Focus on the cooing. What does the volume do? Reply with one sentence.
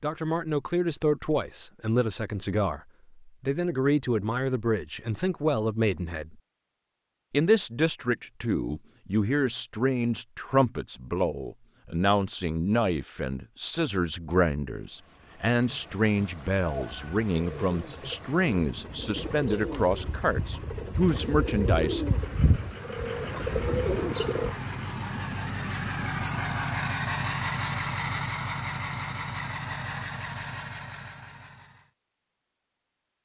The volume of the cooing goes up.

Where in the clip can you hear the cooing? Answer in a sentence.
The cooing can be heard from 16.6 to 24.6 s.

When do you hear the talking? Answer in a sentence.
The talking can be heard from 0.0 to 6.3 s and from 7.3 to 22.1 s.